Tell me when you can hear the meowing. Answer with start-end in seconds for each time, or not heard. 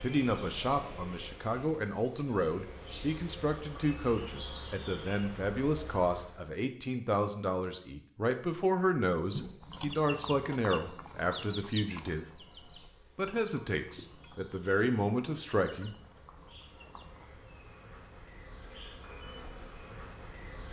9.3-10.1.